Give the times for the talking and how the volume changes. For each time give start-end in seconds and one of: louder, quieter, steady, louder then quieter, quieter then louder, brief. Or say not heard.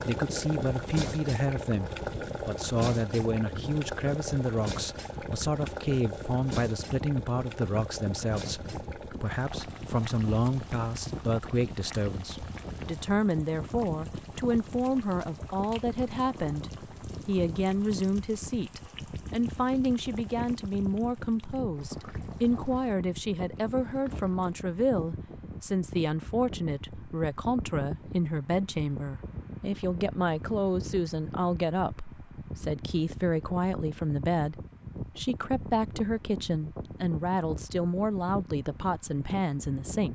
0.1-40.0 steady.